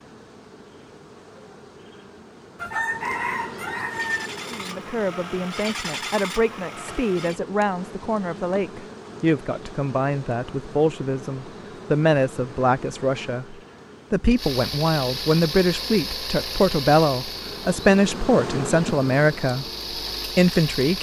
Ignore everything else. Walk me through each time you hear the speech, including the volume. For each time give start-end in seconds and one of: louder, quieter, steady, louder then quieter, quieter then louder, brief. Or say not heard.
4.5-19.6 louder
20.4-20.9 brief.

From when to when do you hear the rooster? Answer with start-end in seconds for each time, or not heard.
2.5-4.3.